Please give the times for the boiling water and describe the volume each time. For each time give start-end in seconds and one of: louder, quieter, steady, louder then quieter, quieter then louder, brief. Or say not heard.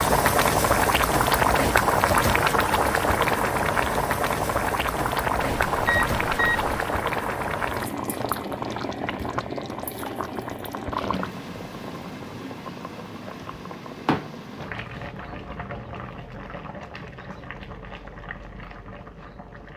0.0-19.7 quieter.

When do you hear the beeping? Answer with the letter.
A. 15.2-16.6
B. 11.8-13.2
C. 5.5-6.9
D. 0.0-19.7
C.